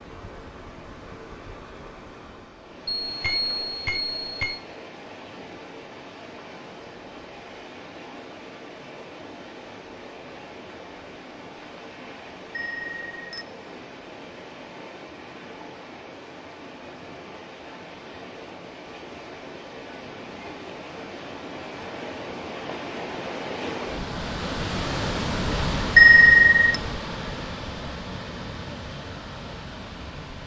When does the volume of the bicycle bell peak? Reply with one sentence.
The loudest moment of the bicycle bell is at 26 seconds.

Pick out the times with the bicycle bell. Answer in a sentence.
You can hear the bicycle bell from 3.0 to 4.6 s, from 12.6 to 13.4 s and from 25.9 to 26.6 s.